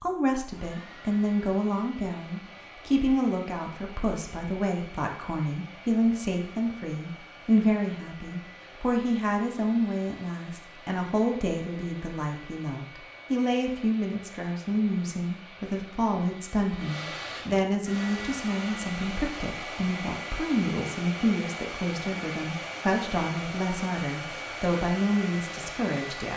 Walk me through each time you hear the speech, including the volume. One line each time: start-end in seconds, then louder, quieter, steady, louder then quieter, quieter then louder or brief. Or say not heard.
0.0-26.3 steady.